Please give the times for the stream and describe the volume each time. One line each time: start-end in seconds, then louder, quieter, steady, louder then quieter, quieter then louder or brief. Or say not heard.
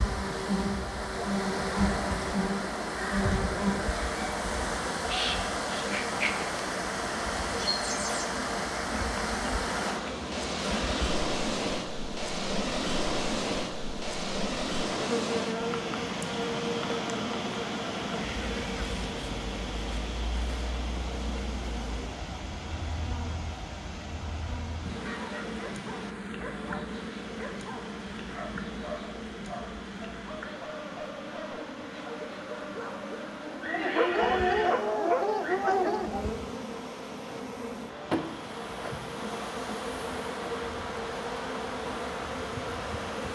0.0-43.3 quieter.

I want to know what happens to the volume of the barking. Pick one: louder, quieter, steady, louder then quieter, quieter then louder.
louder.